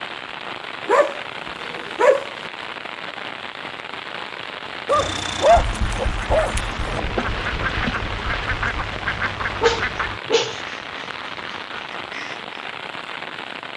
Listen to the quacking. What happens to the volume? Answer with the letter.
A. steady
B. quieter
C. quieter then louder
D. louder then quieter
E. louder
B.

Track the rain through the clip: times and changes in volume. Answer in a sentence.
You can hear the rain from 0.0 to 13.7 s, at a steady volume.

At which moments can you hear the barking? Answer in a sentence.
The barking can be heard from 0.8 to 2.5 s, from 4.8 to 7.0 s and from 9.6 to 10.6 s.